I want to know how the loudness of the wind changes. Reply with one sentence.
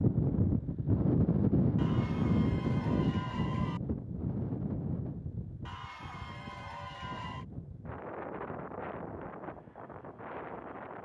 The volume of the wind goes down.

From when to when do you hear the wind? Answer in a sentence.
You can hear the wind from 0.0 to 11.0 s.